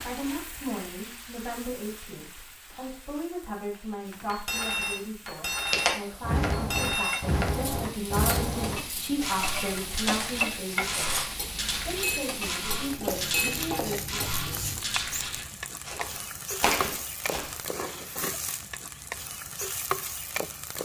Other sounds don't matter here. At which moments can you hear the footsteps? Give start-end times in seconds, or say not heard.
5.7-17.6.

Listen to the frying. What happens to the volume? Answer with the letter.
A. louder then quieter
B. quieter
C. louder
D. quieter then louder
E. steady
C.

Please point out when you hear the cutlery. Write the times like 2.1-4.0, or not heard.
4.2-14.6.